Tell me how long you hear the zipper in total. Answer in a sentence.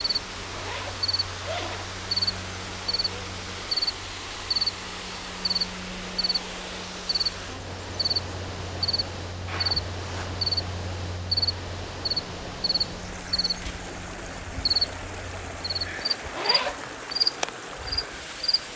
The zipper can be heard for 3 seconds in total.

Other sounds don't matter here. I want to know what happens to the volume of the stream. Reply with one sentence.
The loudness of the stream stays about the same.